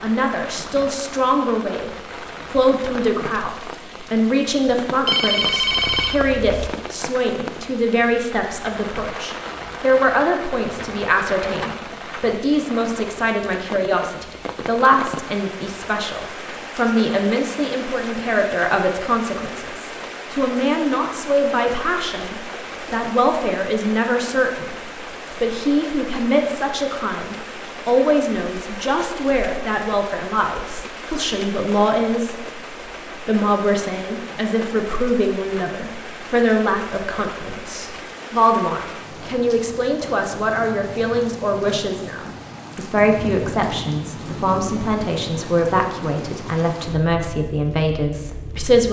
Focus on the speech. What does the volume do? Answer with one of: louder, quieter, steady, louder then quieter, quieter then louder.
steady.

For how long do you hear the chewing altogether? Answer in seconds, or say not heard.
not heard.